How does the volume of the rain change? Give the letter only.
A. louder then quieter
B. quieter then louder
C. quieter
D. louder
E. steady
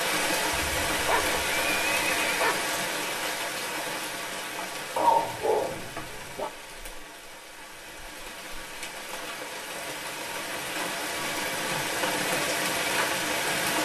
B.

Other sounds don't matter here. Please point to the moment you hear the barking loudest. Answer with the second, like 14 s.
5 s.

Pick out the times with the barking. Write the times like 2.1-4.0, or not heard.
5.0-6.5.